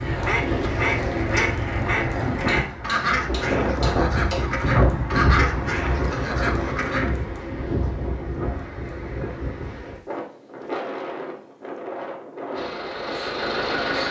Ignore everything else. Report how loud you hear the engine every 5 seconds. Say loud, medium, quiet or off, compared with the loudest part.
loud, off, loud.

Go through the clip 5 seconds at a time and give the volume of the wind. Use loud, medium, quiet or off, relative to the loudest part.
loud, loud, medium.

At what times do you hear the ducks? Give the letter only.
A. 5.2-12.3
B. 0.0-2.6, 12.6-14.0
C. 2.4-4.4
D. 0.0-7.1
D.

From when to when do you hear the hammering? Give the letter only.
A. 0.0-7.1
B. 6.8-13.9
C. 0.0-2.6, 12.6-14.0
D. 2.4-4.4
D.